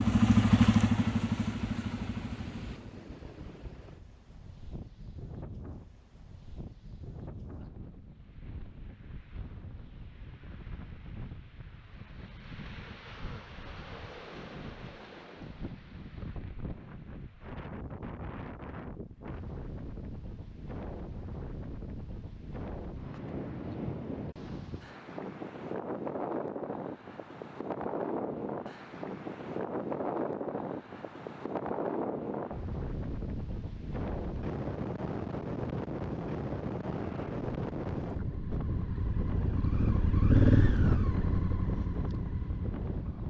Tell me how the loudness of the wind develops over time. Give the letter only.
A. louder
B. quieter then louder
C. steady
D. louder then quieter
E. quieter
A.